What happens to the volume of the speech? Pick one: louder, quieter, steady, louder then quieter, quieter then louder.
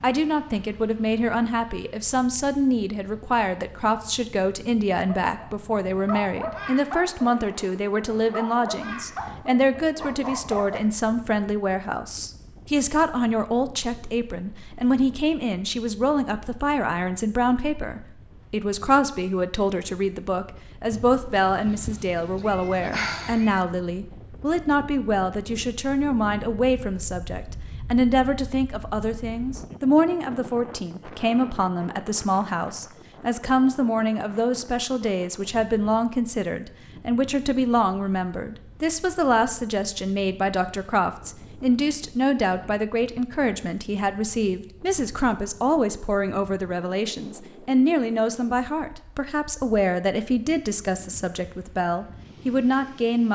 steady.